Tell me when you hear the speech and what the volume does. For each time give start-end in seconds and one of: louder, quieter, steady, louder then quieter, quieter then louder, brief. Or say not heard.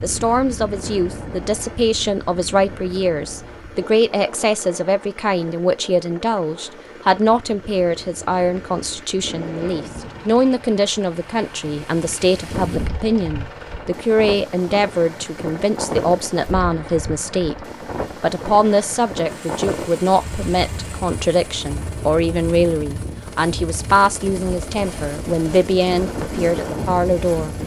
0.0-17.6 steady
18.2-27.6 steady.